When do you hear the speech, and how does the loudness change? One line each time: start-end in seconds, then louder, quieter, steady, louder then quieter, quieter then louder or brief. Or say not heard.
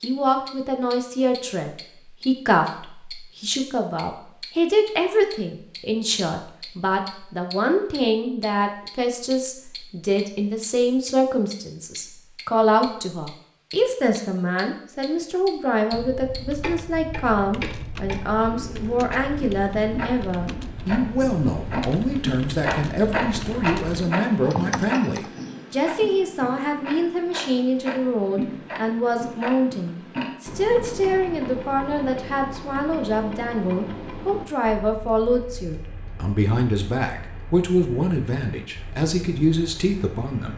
0.0-40.5 steady.